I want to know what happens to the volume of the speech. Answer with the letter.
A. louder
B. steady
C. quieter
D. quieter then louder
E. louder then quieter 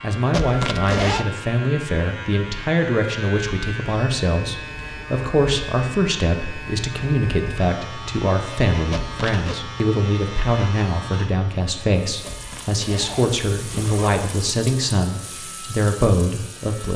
B.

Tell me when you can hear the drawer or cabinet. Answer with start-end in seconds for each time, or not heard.
not heard.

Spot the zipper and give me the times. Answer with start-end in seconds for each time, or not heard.
0.3-1.2, 8.9-9.6, 12.2-14.2.